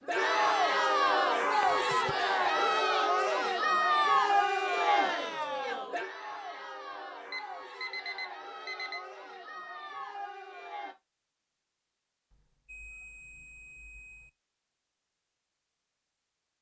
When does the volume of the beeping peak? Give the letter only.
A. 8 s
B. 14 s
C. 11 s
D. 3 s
A.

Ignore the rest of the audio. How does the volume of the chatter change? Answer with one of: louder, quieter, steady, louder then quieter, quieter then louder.
quieter.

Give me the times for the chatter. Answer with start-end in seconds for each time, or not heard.
0.1-10.9.